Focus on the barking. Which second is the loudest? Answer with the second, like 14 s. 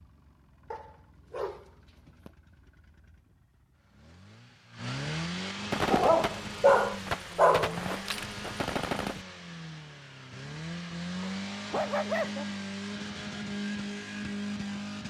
7 s.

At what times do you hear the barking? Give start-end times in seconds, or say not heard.
0.7-2.3, 5.9-7.8, 11.2-12.4.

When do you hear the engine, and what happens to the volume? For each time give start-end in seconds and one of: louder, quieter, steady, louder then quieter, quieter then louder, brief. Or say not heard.
0.0-15.0 louder.